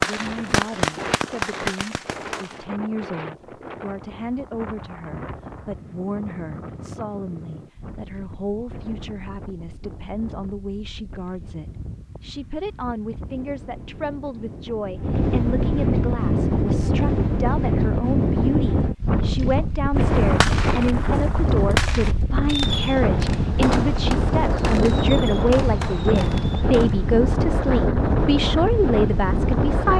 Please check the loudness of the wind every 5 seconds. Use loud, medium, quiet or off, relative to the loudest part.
quiet, quiet, quiet, loud, loud, loud.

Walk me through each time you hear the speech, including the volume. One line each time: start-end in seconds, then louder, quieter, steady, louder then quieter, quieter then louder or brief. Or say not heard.
0.0-29.9 louder.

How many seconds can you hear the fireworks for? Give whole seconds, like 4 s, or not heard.
10 s.